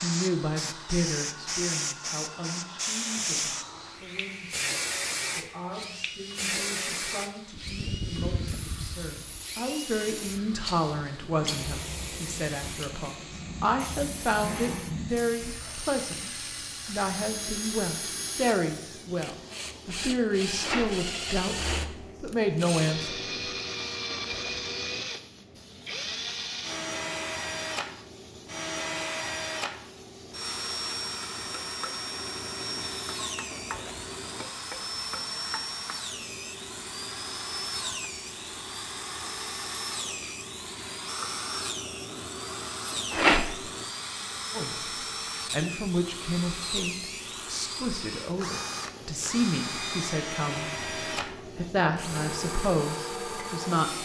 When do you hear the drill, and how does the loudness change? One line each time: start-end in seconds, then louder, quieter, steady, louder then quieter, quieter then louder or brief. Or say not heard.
0.1-53.9 louder.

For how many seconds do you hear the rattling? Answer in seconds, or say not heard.
3 s.